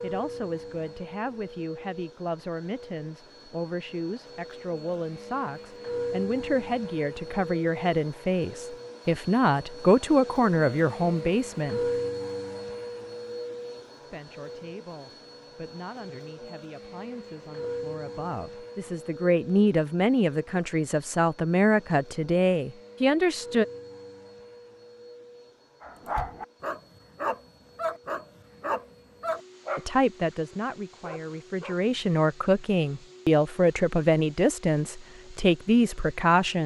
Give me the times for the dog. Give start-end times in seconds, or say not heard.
25.8-29.9, 30.5-31.8.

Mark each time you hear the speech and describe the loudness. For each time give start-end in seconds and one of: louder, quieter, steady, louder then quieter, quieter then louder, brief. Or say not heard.
0.0-11.8 louder
14.1-23.6 louder
29.8-36.6 louder.